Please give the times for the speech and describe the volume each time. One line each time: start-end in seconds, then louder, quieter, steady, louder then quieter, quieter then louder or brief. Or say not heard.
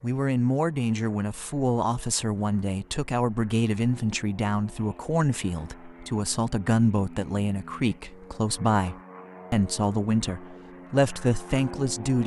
0.0-12.2 steady.